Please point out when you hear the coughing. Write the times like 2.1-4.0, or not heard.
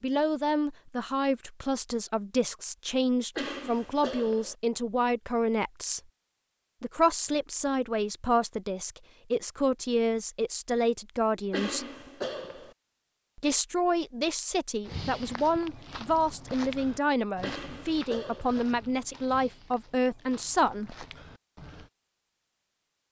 3.4-4.5, 11.5-12.8, 17.4-18.6.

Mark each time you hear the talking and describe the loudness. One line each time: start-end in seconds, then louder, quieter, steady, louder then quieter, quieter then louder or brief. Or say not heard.
0.0-6.0 steady
6.8-11.8 steady
13.3-21.1 steady.